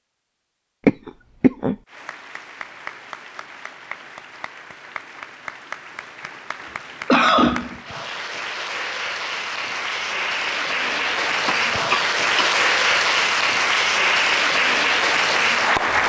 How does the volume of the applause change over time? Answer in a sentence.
The loudness of the applause goes up.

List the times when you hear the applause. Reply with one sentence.
The applause can be heard from 1.9 to 16.0 s.